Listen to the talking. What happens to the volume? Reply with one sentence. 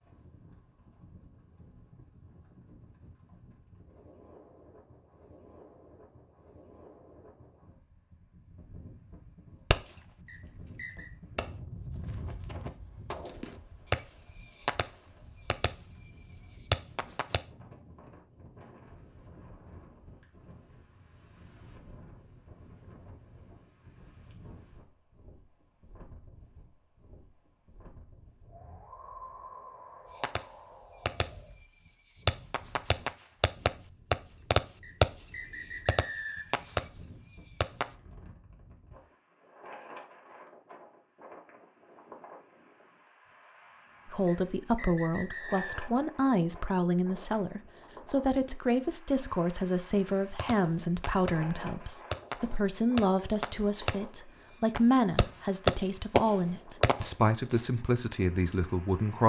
The loudness of the talking stays about the same.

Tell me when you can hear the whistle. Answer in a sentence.
The whistle can be heard from 10.2 to 11.1 s, from 34.8 to 36.6 s and from 44.2 to 45.8 s.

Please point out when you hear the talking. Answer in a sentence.
The talking can be heard from 44.0 to 59.2 s.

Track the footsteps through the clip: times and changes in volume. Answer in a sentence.
You can't hear the footsteps here.